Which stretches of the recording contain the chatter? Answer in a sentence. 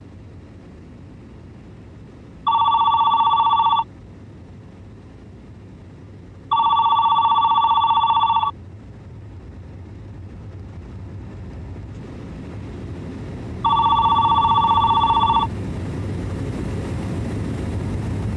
You can't hear the chatter here.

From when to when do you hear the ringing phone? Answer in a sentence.
You can hear the ringing phone from 2.5 to 3.9 s, from 6.5 to 8.5 s and from 13.6 to 15.5 s.